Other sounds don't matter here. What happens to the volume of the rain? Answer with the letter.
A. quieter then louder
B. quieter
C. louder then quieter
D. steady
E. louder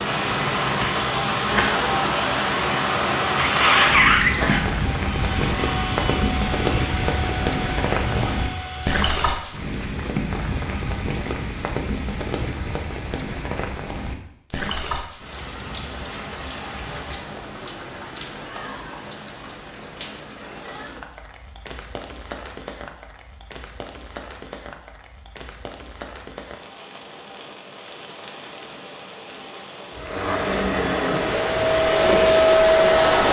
B.